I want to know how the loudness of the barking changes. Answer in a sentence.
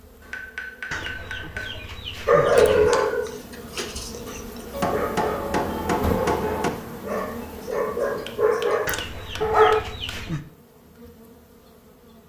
The volume of the barking goes down, then up.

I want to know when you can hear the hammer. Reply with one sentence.
The hammer can be heard from 0.2 to 1.8 s, from 4.7 to 6.7 s and from 8.2 to 10.2 s.